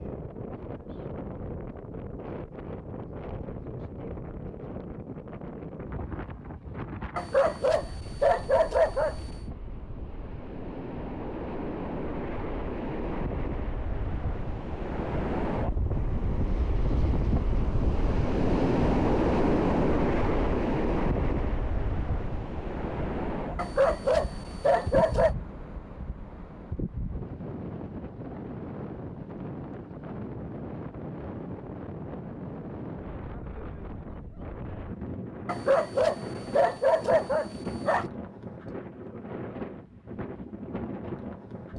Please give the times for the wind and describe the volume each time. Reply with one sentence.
The wind can be heard from 0.0 to 41.7 s, getting louder then quieter.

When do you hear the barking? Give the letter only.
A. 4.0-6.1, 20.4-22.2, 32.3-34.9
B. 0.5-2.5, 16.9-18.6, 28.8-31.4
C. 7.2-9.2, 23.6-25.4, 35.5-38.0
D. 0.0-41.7
C.